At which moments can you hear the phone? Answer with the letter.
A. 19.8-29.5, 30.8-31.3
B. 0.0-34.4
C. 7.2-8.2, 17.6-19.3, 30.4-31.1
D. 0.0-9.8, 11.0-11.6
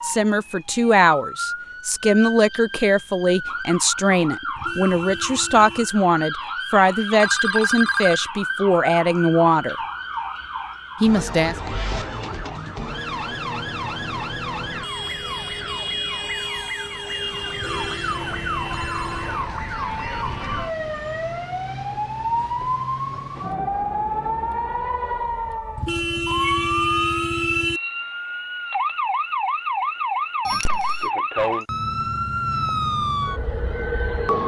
C.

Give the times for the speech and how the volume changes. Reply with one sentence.
The speech can be heard from 0.0 to 9.8 s, at a steady volume; and briefly from 11.0 to 11.6 s.